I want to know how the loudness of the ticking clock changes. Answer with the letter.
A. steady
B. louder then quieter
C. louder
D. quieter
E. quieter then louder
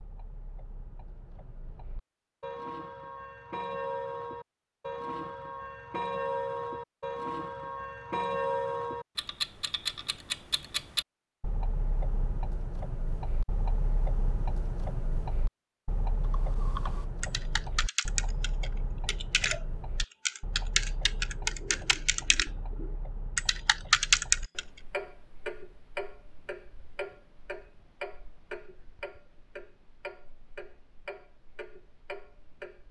D.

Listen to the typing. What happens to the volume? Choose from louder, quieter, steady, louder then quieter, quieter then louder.
louder.